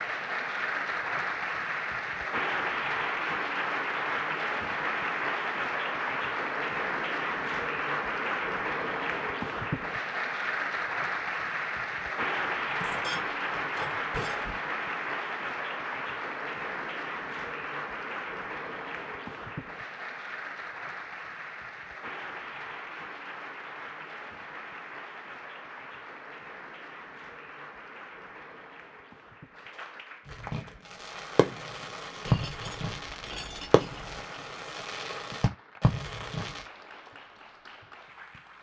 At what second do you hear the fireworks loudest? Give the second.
32 s.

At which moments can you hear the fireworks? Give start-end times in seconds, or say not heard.
30.2-36.6.